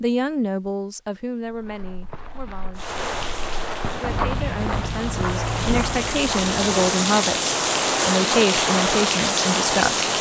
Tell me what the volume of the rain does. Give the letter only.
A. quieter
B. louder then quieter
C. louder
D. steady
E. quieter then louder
C.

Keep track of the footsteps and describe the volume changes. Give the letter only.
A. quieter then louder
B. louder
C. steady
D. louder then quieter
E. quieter
B.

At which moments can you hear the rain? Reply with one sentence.
You can hear the rain from 2.8 to 10.1 s.